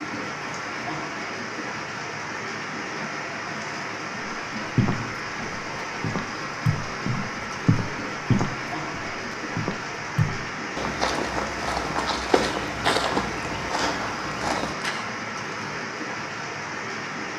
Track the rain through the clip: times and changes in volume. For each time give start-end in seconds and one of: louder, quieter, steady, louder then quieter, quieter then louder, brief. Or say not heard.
0.0-17.3 steady.